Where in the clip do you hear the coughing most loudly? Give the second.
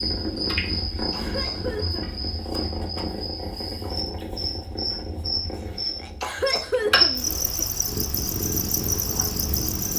7 s.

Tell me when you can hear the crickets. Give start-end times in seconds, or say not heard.
0.0-9.9.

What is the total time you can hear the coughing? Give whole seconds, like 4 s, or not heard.
3 s.